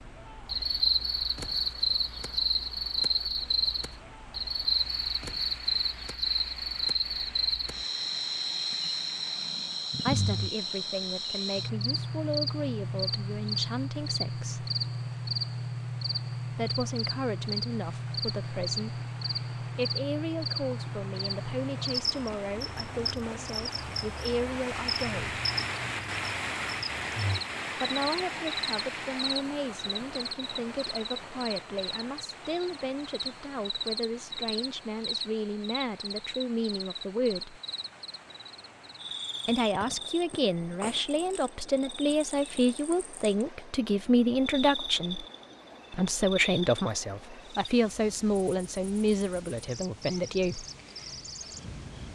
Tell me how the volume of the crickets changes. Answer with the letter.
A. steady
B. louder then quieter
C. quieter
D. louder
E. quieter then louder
C.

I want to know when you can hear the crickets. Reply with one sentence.
You can hear the crickets from 0.0 to 52.1 s.